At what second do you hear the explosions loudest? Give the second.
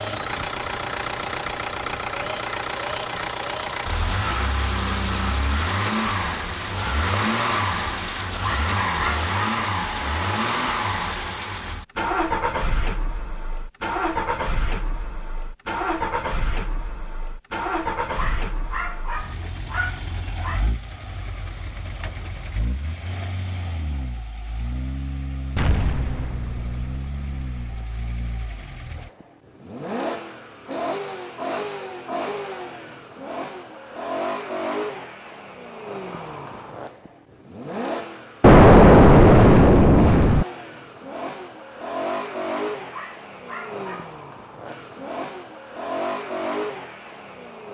39 s.